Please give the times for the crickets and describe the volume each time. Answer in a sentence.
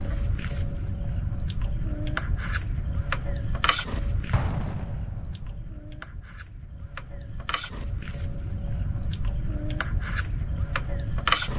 The crickets can be heard from 0.0 to 11.5 s, getting quieter then louder.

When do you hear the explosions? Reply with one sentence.
The explosions can be heard from 4.3 to 5.7 s.